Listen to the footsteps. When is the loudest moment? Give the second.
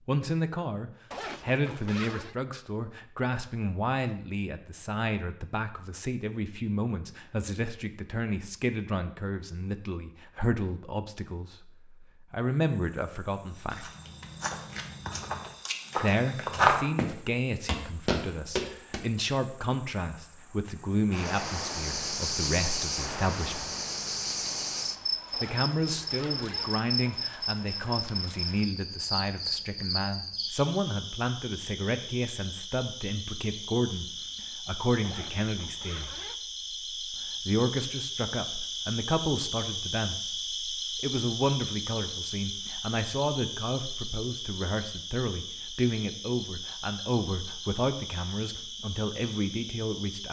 17 s.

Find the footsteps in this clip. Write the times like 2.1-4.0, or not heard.
13.6-19.0.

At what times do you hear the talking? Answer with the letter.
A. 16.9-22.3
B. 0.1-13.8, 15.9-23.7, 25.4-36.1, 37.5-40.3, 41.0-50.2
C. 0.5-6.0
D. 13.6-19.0
B.